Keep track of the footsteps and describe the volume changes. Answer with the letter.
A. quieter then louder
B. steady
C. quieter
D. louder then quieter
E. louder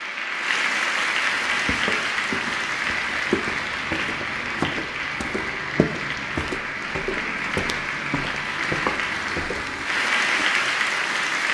B.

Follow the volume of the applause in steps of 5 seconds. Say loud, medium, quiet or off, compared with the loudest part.
loud, medium, loud.